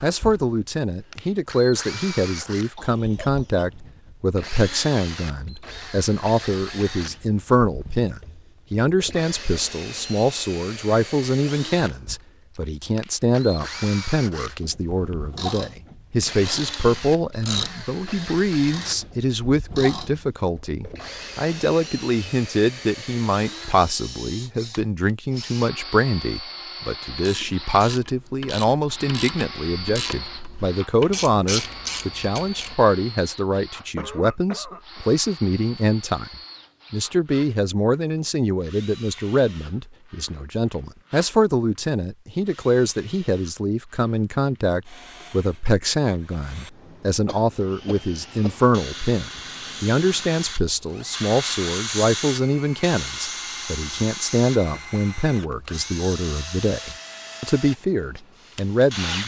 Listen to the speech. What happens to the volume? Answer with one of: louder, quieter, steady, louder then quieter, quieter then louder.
steady.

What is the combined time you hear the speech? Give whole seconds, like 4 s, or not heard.
59 s.